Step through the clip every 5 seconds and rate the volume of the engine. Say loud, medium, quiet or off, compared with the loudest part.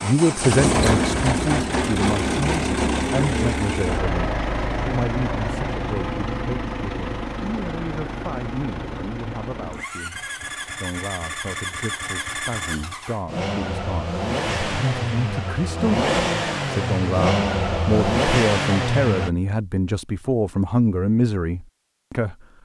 loud, medium, medium, loud, off.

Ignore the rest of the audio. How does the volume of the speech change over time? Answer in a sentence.
The volume of the speech goes down, then up.